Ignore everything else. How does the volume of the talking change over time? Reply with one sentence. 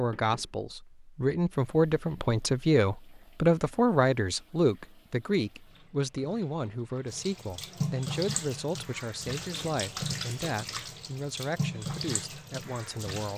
The loudness of the talking goes down.